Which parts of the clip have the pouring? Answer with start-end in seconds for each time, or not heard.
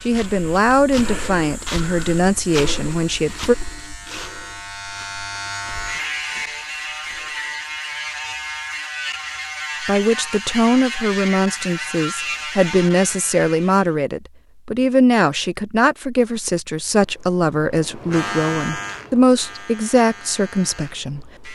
not heard.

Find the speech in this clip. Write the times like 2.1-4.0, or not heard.
0.0-3.5, 9.8-21.5.